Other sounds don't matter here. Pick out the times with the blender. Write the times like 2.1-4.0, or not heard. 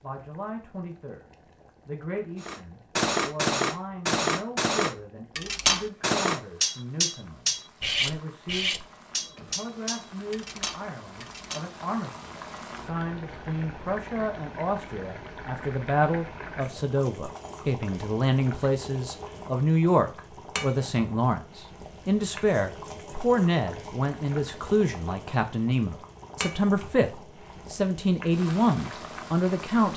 not heard.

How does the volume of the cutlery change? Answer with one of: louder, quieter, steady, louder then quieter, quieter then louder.
quieter.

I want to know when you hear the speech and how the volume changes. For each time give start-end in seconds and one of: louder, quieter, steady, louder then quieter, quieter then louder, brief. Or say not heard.
0.0-1.2 brief
1.9-8.8 steady
9.4-29.9 louder.